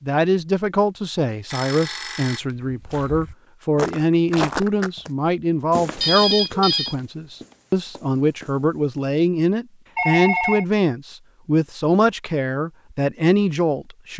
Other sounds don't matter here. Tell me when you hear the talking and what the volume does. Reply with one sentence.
The talking can be heard from 0.0 to 14.1 s, at a steady volume.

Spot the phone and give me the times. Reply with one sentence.
You can hear the phone from 1.5 to 2.4 s, from 6.0 to 7.0 s and from 9.9 to 10.7 s.